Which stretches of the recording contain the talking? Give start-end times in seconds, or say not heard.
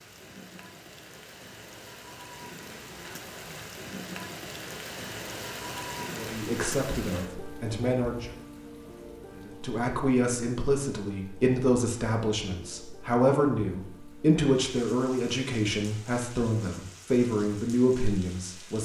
6.1-8.3, 9.3-18.8.